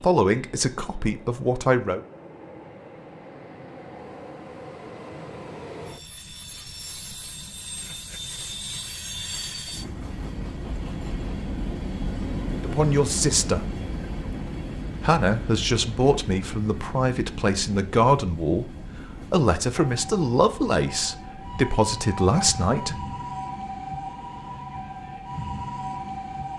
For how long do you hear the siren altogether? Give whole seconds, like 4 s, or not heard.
7 s.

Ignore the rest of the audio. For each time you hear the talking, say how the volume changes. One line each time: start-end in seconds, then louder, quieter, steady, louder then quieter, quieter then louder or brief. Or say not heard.
0.0-2.0 brief
12.6-13.7 brief
15.0-22.9 steady.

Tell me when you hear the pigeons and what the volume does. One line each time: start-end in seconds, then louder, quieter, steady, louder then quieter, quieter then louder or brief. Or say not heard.
not heard.